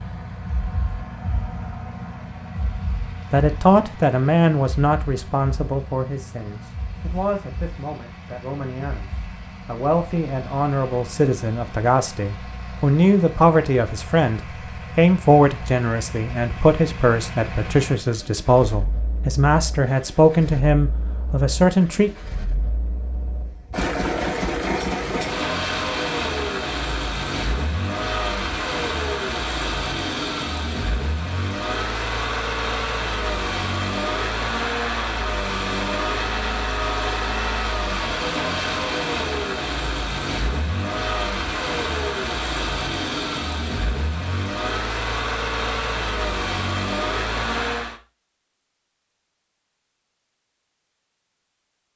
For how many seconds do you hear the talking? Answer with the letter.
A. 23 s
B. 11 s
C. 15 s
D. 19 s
D.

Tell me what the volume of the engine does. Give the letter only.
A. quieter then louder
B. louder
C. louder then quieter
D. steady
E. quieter
B.